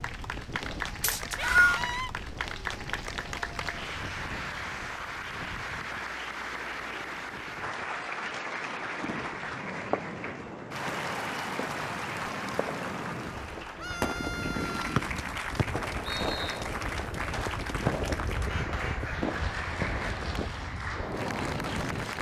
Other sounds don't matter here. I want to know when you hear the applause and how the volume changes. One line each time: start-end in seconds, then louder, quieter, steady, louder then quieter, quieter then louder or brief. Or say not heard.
0.0-22.1 steady.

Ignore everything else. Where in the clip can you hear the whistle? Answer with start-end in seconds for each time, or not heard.
1.0-1.8, 14.9-16.6.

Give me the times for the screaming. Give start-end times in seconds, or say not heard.
1.4-2.1, 13.8-15.0.